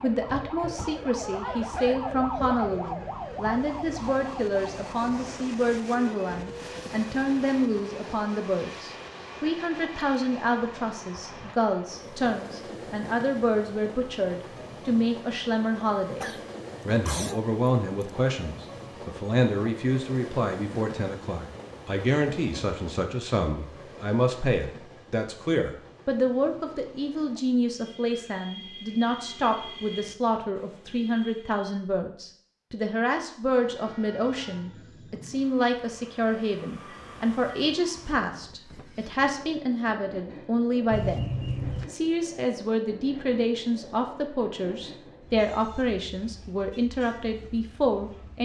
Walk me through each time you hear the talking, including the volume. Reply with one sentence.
You can hear the talking from 0.0 to 41.3 s, at a steady volume; and from 41.9 to 48.4 s, at a steady volume.